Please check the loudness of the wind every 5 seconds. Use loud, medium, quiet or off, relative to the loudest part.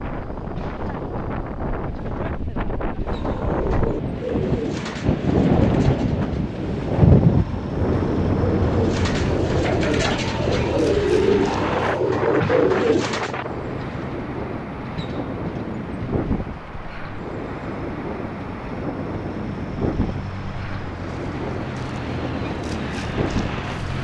medium, loud, medium, medium, medium.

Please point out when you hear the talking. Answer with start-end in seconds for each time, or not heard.
not heard.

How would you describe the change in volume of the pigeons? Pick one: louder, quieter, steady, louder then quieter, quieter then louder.
quieter then louder.